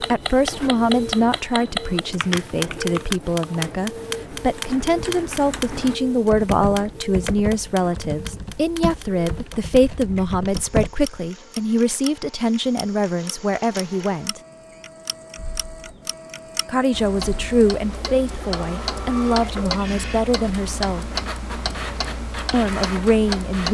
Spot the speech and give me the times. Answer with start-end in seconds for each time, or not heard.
0.0-14.4, 16.6-21.1, 22.5-23.6.